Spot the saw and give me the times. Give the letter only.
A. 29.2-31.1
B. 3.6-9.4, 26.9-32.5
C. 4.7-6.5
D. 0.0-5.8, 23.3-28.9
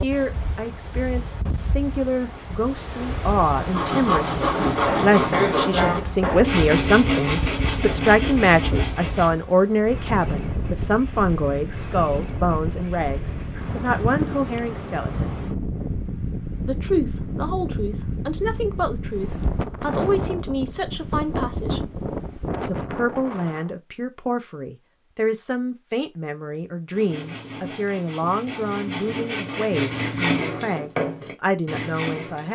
B.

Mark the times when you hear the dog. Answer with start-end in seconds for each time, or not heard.
not heard.